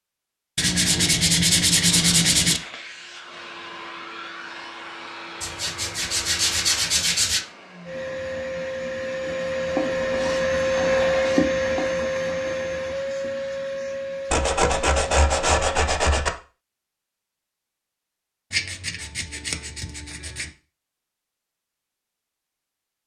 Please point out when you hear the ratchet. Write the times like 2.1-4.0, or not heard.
not heard.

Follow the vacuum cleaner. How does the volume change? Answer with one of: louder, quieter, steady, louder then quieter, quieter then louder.
louder then quieter.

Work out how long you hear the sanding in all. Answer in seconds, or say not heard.
10 s.